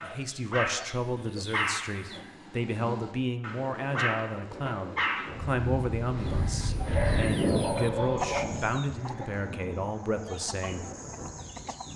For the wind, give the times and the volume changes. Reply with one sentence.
You can hear the wind from 3.5 to 11.9 s, getting louder then quieter.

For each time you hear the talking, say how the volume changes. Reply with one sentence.
You can hear the talking from 0.0 to 10.8 s, at a steady volume.